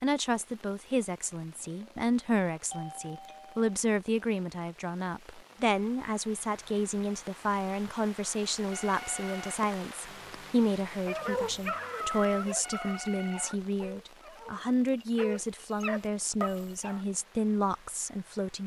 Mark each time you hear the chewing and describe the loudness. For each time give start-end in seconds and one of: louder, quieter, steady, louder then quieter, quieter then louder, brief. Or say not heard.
not heard.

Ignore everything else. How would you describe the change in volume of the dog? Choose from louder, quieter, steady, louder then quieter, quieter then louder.
quieter then louder.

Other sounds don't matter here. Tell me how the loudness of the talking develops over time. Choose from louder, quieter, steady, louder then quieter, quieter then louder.
steady.